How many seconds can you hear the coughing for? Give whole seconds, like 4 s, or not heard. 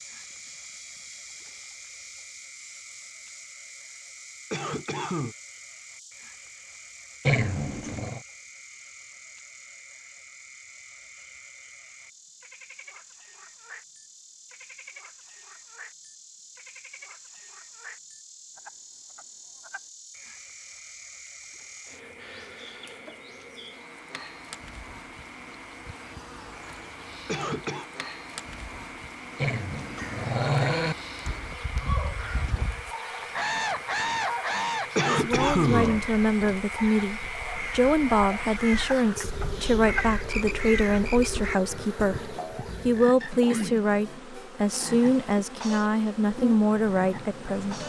3 s.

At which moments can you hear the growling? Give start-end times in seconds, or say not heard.
7.2-8.2, 29.4-30.9.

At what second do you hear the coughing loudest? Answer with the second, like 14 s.
36 s.